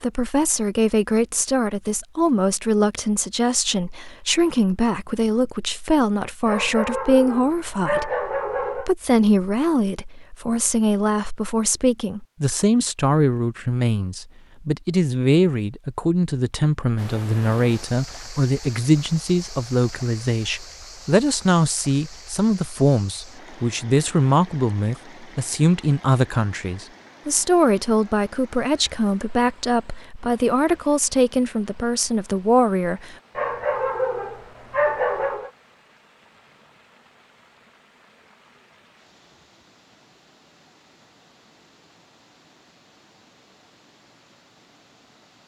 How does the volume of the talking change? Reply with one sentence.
The volume of the talking stays about the same.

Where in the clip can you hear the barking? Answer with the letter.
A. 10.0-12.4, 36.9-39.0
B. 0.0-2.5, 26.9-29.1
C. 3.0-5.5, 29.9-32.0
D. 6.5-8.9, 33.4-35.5
D.